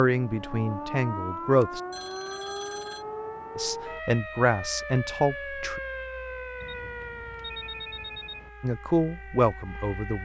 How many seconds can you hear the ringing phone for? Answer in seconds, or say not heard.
3 s.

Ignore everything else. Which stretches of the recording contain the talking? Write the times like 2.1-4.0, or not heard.
0.0-1.8, 3.5-5.8, 8.6-10.1.